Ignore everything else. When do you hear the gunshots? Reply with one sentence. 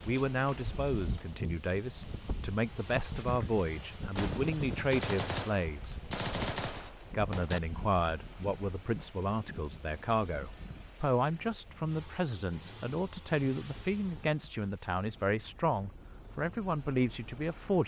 You can hear the gunshots from 4.2 to 7.6 s.